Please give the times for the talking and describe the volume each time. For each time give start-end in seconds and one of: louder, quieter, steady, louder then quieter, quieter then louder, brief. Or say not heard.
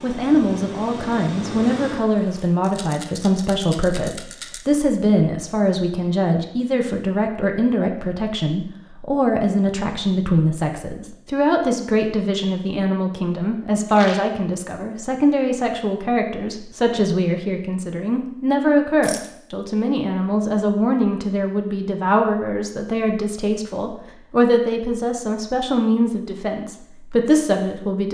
0.0-28.0 steady.